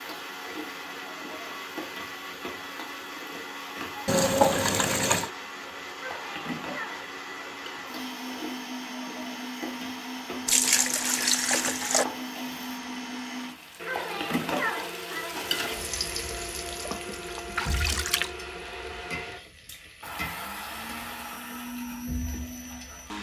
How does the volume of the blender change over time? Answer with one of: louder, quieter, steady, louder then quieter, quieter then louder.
steady.